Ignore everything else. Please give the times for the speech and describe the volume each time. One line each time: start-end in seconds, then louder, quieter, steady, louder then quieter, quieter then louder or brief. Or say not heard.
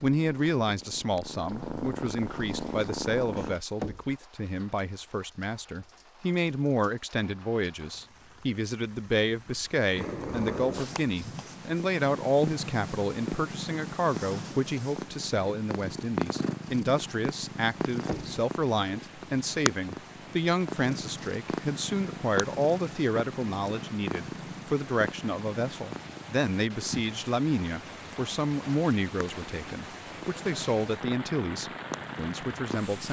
0.0-33.0 steady.